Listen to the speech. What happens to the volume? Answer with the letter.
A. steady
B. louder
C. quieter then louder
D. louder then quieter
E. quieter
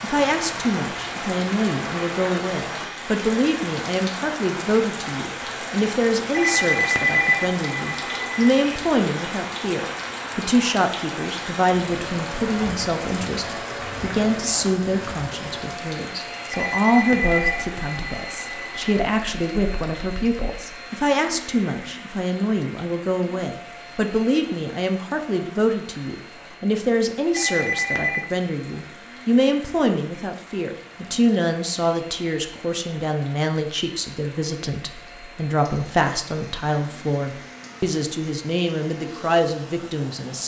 A.